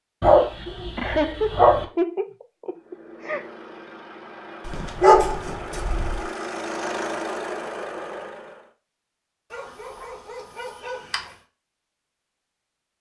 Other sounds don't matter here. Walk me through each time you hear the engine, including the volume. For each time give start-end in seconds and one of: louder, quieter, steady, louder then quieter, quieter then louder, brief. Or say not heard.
2.8-8.7 louder.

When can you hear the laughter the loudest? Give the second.
1 s.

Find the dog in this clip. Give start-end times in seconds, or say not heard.
0.2-1.9, 4.7-6.2, 9.5-11.2.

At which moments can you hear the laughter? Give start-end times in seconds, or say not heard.
0.9-3.5.